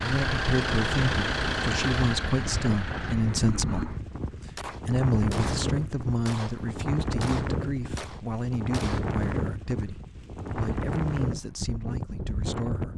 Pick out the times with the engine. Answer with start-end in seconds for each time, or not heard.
0.0-3.1.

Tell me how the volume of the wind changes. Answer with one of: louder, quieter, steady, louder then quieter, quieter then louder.
steady.